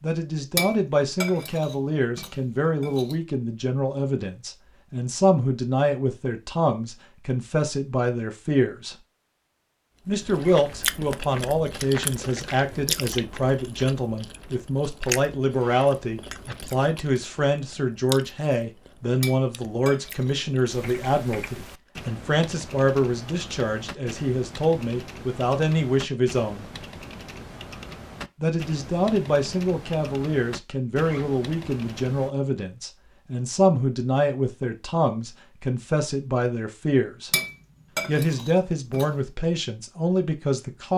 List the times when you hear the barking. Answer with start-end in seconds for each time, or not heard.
not heard.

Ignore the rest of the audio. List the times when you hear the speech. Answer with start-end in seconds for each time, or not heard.
0.0-8.9, 10.1-26.7, 28.4-37.3, 38.0-40.9.